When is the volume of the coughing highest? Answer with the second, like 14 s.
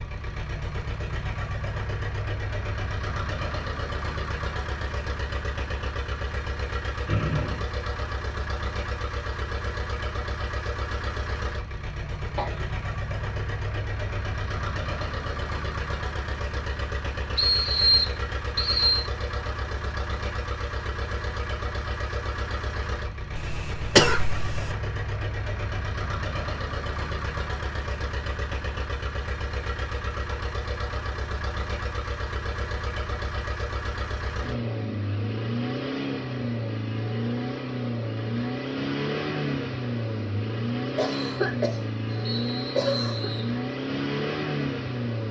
24 s.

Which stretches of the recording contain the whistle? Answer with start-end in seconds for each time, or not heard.
7.0-7.7, 17.4-19.1, 42.2-43.5.